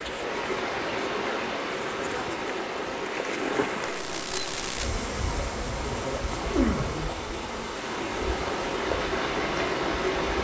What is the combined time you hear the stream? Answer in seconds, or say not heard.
10 s.